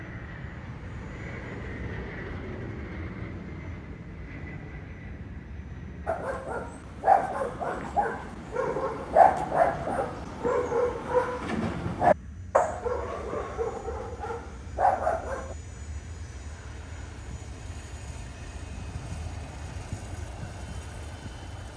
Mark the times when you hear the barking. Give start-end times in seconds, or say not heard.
6.0-15.6.